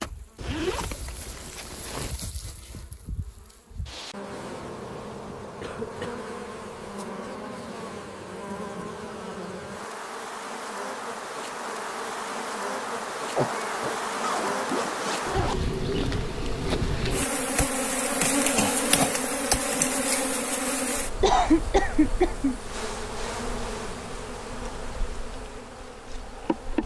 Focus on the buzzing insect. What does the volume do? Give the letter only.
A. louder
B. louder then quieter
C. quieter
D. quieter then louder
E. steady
B.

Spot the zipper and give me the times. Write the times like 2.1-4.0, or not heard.
0.3-2.1, 14.2-15.8.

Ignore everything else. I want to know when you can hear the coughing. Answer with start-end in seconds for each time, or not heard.
5.6-6.2, 13.3-13.9, 21.2-22.6.